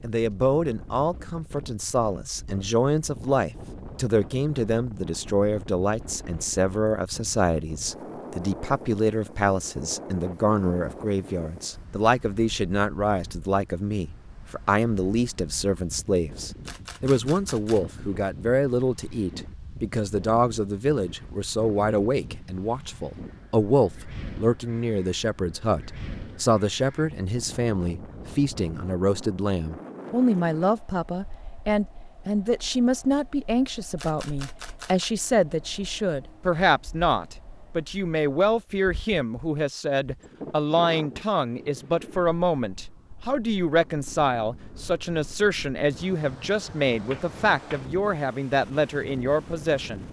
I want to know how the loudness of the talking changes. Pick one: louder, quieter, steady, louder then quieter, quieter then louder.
steady.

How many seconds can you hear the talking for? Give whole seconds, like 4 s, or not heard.
50 s.